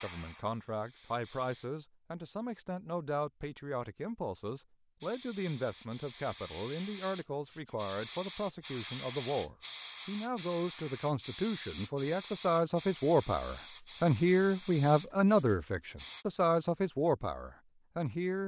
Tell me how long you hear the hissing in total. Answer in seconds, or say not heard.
13 s.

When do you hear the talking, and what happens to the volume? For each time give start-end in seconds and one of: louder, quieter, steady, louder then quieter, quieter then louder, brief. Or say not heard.
0.0-18.4 louder.